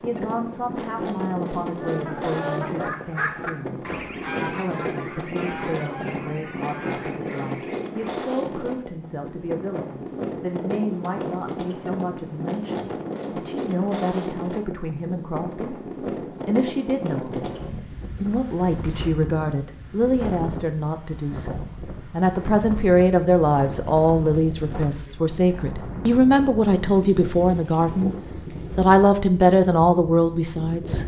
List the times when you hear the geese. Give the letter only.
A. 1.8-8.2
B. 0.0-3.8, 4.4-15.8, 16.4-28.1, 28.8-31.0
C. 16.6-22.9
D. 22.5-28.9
A.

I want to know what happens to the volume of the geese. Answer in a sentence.
The volume of the geese goes down.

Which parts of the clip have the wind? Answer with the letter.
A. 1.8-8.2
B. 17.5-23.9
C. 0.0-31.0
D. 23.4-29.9
C.